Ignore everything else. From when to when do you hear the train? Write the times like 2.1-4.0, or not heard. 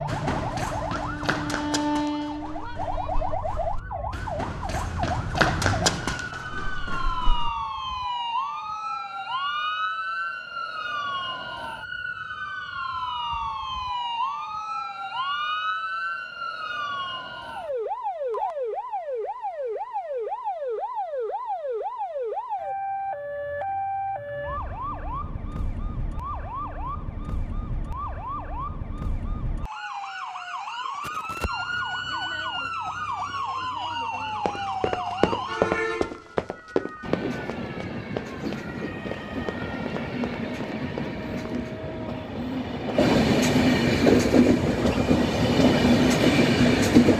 0.0-3.4, 37.0-47.1.